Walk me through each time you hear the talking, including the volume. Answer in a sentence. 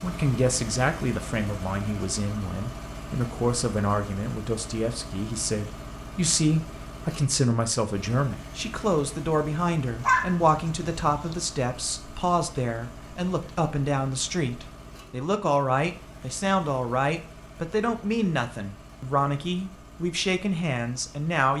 The talking can be heard from 0.0 to 21.5 s, at a steady volume.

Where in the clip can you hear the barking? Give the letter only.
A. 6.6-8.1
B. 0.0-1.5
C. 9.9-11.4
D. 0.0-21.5
C.